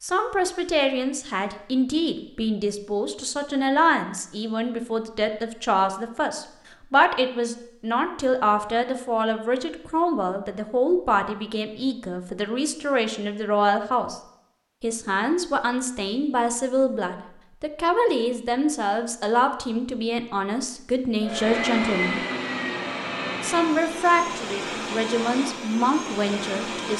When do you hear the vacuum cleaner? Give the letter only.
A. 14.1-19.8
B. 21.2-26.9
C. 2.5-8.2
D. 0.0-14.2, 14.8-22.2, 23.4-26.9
B.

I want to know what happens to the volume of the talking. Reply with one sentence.
The loudness of the talking stays about the same.